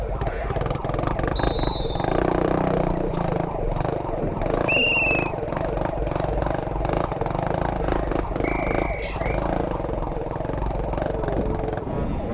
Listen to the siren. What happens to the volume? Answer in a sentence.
The loudness of the siren stays about the same.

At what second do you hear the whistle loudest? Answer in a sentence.
The volume of the whistle peaks at 5 seconds.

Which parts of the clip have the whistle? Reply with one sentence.
The whistle can be heard from 1.4 to 2.2 s, from 4.7 to 5.3 s and from 8.4 to 9.2 s.